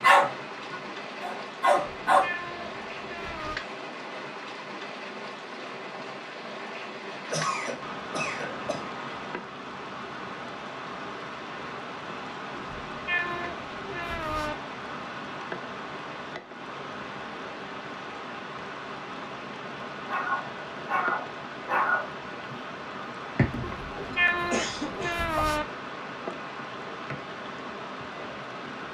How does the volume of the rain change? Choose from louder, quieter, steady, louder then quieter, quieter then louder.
steady.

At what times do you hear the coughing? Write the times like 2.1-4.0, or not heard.
7.2-8.8, 24.1-25.2.